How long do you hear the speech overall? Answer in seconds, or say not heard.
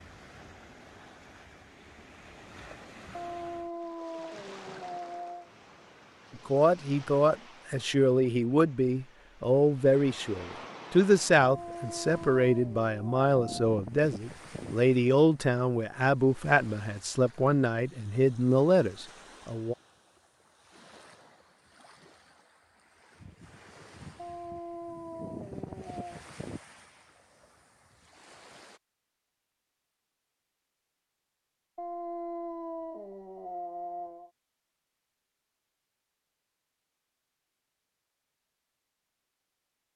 13 s.